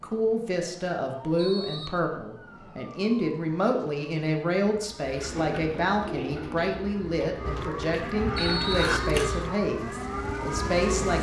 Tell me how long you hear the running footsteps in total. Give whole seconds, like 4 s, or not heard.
not heard.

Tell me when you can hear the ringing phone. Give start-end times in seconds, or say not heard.
not heard.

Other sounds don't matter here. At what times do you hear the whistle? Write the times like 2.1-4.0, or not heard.
1.4-2.0, 8.3-9.5.